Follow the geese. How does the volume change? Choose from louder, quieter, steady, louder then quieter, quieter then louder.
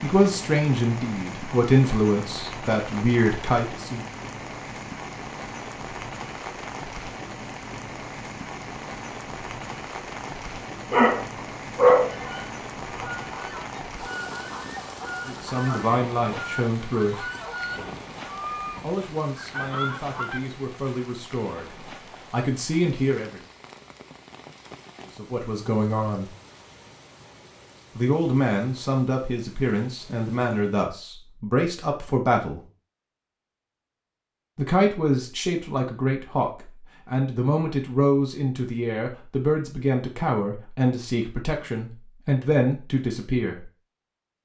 louder.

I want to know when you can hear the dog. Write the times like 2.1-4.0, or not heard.
10.9-12.2.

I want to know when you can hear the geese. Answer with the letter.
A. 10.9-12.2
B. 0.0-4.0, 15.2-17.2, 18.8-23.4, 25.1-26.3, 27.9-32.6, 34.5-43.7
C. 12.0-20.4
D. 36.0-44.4
C.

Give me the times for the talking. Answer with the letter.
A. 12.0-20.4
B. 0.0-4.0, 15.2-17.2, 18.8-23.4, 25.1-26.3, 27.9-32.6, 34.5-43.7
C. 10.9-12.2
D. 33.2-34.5
B.